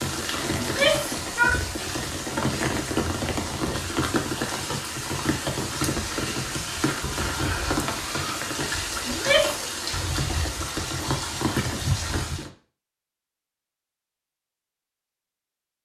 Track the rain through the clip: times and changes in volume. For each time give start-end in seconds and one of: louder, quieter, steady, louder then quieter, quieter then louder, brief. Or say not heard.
0.0-12.5 steady.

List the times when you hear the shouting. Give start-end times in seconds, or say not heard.
0.6-1.6, 9.1-9.6.